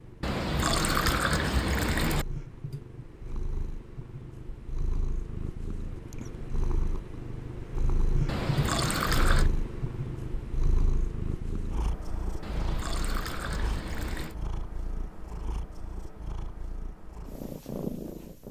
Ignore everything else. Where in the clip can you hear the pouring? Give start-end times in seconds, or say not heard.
0.2-2.2, 8.2-9.5, 12.4-14.3.